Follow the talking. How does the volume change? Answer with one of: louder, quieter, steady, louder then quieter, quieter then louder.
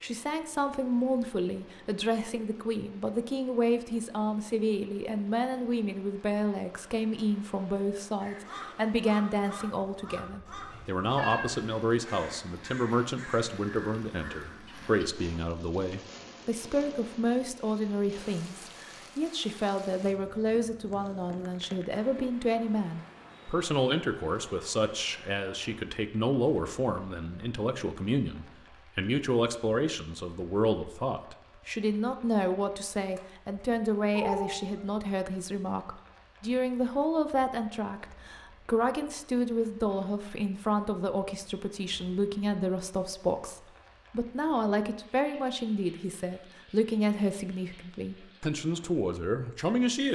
steady.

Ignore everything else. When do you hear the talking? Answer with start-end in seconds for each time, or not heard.
0.0-50.1.